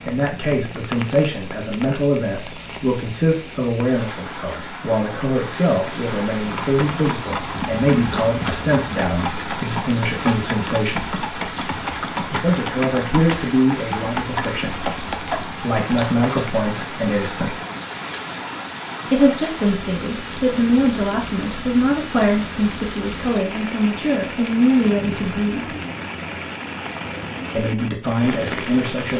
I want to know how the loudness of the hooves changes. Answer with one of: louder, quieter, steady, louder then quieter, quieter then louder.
steady.